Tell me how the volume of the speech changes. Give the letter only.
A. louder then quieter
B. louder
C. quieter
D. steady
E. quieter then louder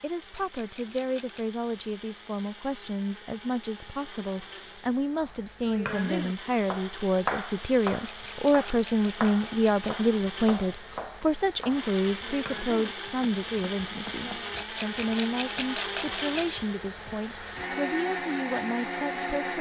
A.